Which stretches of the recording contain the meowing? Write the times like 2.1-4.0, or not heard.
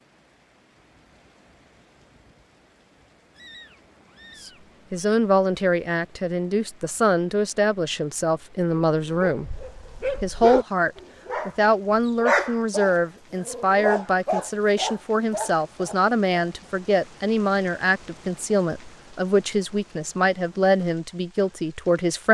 3.4-5.0.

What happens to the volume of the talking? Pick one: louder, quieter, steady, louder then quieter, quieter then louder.
steady.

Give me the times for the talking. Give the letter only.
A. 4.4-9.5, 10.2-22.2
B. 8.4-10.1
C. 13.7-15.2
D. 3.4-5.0
A.